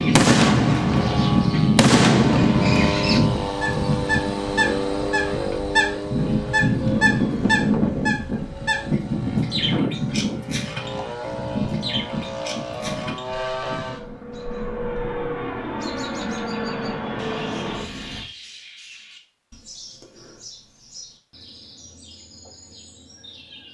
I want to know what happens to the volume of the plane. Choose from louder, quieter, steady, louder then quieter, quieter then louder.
quieter.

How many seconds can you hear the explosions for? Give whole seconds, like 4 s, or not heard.
3 s.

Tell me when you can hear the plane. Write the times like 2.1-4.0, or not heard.
0.0-18.3.